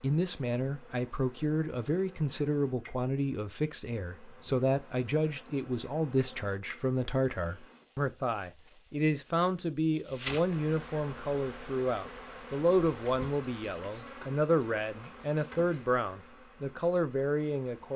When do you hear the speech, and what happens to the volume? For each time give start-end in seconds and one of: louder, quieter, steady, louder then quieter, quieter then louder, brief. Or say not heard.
0.0-17.9 steady.